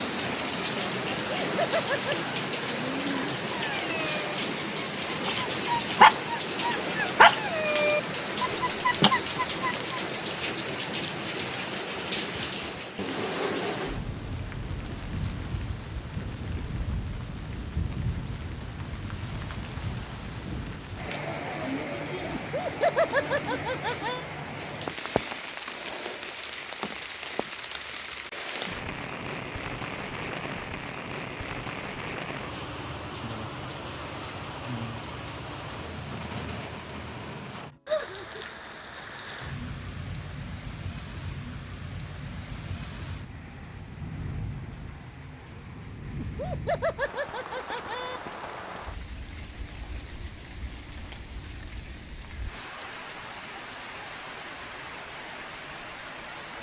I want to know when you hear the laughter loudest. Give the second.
23 s.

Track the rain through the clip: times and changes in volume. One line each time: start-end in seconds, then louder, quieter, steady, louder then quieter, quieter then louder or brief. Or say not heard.
0.0-56.5 quieter.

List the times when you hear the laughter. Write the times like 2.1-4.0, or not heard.
1.3-2.1, 22.3-24.2, 46.1-48.2.